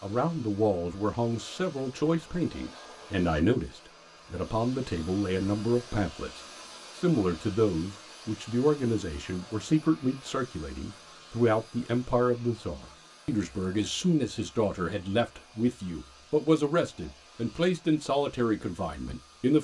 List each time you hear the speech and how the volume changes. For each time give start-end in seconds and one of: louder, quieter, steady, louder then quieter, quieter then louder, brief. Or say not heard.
0.0-19.5 steady.